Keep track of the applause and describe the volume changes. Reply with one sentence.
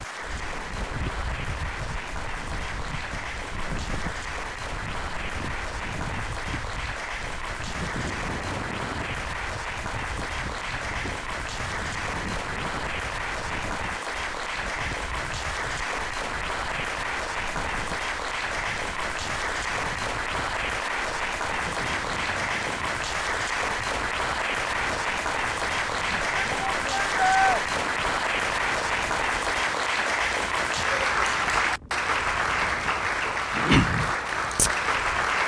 The loudness of the applause goes up.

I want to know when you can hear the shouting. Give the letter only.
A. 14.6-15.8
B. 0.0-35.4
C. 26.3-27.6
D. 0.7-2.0
C.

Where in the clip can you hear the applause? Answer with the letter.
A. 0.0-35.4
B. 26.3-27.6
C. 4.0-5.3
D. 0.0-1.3
A.